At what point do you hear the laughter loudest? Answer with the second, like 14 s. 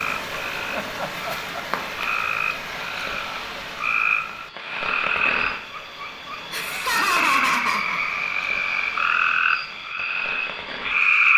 7 s.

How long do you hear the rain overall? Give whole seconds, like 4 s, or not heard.
11 s.